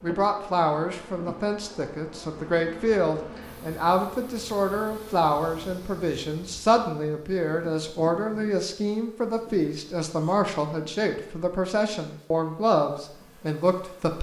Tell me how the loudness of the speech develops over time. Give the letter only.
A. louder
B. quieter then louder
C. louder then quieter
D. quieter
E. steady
E.